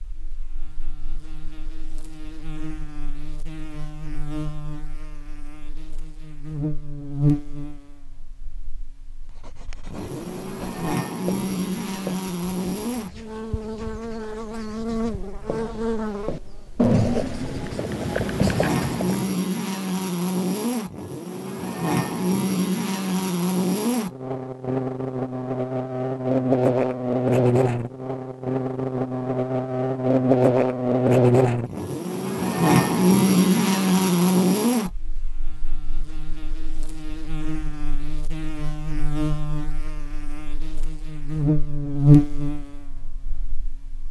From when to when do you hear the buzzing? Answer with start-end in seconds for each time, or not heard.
0.0-44.0.